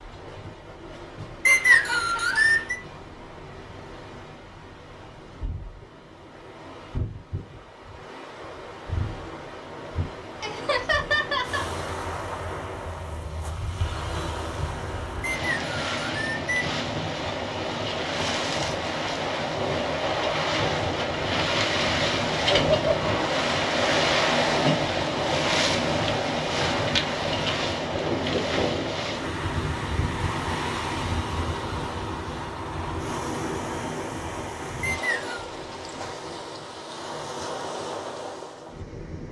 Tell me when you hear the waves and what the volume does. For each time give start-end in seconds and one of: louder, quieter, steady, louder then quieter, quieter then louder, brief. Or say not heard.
0.0-39.2 louder then quieter.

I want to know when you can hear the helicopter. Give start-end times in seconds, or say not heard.
not heard.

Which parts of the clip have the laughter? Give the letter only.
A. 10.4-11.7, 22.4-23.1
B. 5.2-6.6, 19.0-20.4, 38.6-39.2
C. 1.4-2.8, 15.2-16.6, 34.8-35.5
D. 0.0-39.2
A.